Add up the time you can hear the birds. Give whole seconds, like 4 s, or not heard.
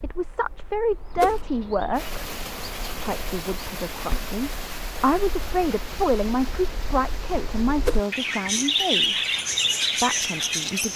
11 s.